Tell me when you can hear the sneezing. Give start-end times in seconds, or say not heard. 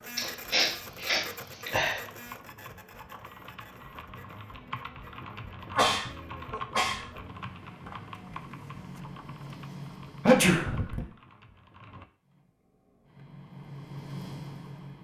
0.1-2.0, 5.7-7.1, 10.2-11.0.